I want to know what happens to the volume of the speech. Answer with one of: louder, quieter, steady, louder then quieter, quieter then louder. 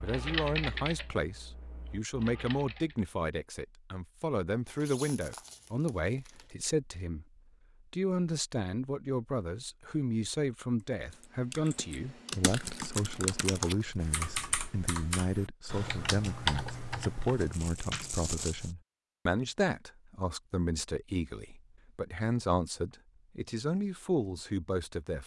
steady.